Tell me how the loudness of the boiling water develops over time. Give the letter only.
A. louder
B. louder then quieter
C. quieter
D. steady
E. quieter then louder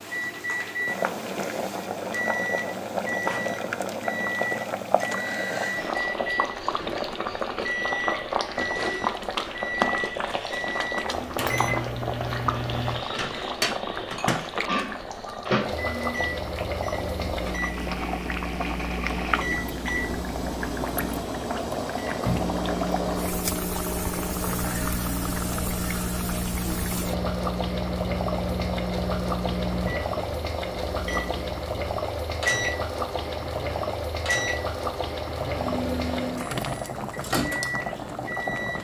D.